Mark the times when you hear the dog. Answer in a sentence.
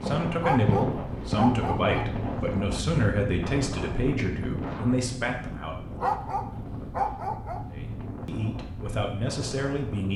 The dog can be heard from 0.4 to 2.0 s and from 6.0 to 7.6 s.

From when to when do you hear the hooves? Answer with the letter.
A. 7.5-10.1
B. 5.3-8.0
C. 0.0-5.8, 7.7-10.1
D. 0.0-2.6
D.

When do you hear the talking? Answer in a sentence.
The talking can be heard from 0.0 to 5.8 s and from 7.7 to 10.1 s.